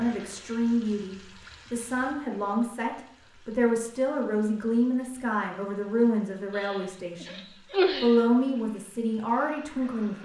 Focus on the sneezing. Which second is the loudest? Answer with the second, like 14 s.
8 s.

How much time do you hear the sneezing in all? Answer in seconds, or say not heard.
2 s.